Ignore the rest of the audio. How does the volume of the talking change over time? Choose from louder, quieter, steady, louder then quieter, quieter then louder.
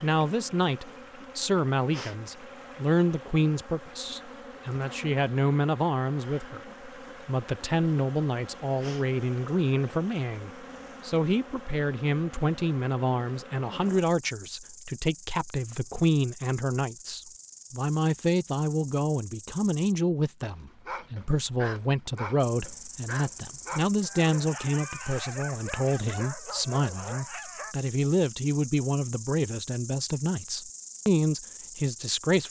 steady.